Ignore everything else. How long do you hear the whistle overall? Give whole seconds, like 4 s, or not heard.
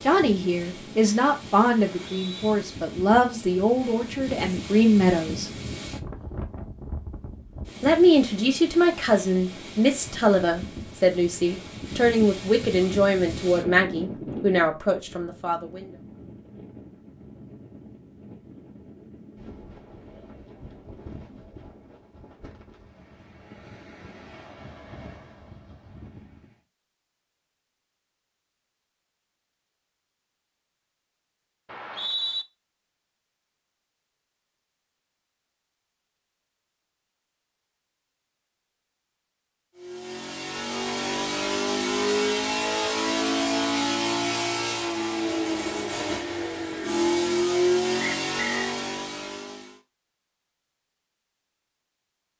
2 s.